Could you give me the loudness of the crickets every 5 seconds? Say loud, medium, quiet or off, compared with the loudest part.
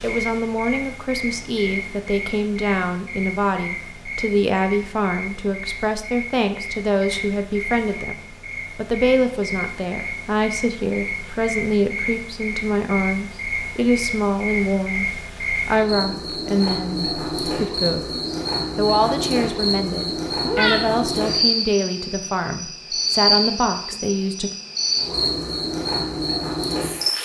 medium, medium, medium, loud, loud, loud.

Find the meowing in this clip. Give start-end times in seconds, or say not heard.
20.4-20.9.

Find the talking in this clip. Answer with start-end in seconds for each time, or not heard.
0.0-8.2, 8.8-24.5.